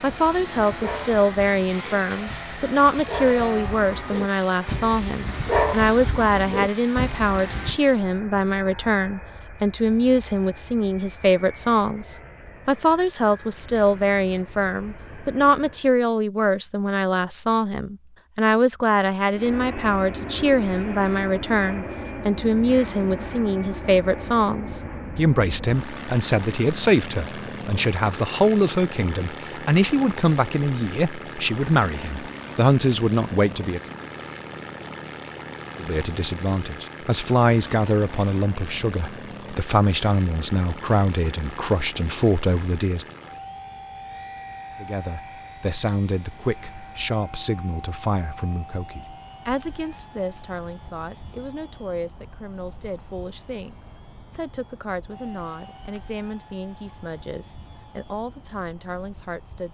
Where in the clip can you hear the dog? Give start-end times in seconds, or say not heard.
0.1-7.8.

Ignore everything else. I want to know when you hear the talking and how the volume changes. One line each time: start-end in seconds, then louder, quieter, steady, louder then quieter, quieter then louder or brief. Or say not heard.
0.0-33.8 steady
35.8-43.0 steady
44.8-59.7 quieter.